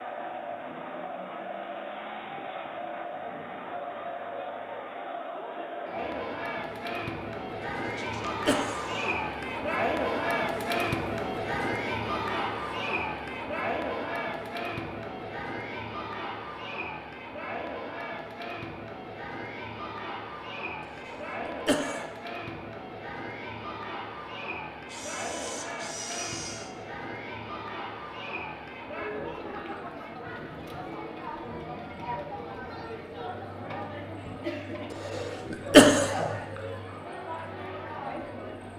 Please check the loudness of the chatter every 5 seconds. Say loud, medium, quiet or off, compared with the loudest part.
medium, loud, loud, medium, medium, medium, medium, medium.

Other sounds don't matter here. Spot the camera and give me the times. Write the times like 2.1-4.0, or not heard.
8.0-9.2, 24.9-26.7.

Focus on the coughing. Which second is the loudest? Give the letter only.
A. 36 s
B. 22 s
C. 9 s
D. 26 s
A.